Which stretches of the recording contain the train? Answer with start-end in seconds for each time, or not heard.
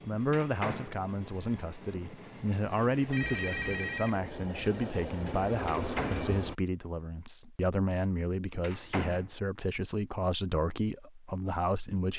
0.0-6.5.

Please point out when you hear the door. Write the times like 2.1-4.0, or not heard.
0.3-1.0, 5.7-6.3, 8.6-9.3.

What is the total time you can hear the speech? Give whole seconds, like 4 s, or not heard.
12 s.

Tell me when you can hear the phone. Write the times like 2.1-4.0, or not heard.
3.1-4.2.